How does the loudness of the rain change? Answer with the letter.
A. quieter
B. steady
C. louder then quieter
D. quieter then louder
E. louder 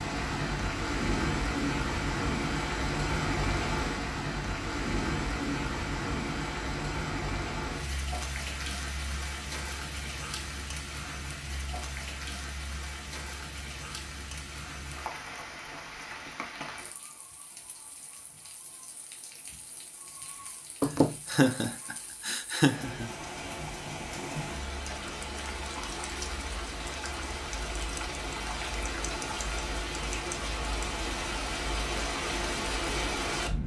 D.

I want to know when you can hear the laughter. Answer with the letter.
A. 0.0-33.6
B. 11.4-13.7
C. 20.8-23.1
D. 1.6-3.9
C.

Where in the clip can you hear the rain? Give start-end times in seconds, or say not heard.
0.0-33.6.